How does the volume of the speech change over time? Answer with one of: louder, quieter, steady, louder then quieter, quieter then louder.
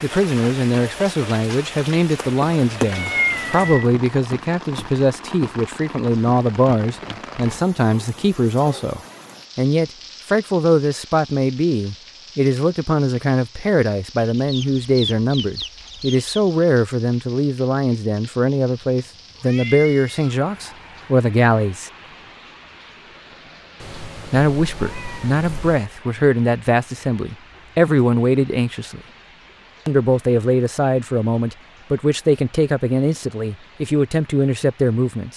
steady.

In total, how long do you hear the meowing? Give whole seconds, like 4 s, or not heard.
6 s.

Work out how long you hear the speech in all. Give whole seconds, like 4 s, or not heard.
32 s.